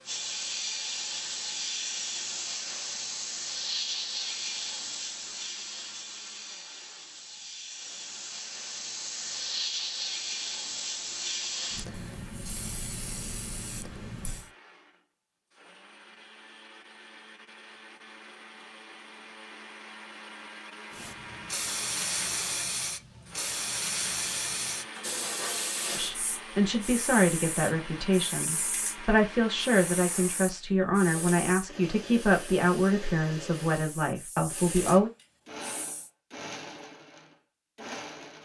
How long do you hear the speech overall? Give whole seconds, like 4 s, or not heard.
9 s.